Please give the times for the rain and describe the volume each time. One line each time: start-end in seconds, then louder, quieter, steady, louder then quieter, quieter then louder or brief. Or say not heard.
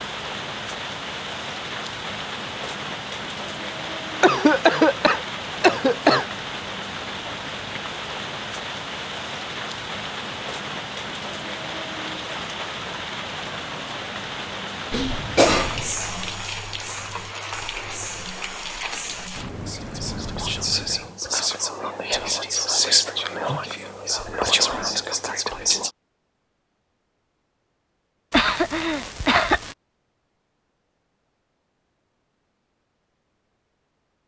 0.0-21.1 steady.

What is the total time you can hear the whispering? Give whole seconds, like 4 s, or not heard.
11 s.